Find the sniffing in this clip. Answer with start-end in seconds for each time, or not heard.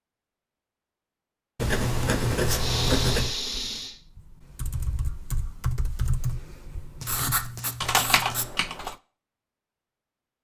2.5-4.0.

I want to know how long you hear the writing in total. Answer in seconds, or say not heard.
3 s.